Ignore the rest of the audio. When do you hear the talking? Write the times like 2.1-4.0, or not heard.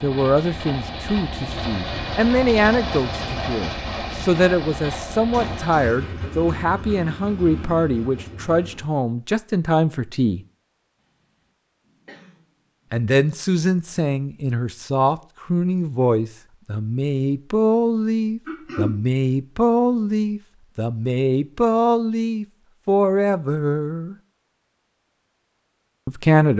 0.0-10.4, 12.9-24.1, 26.1-26.5.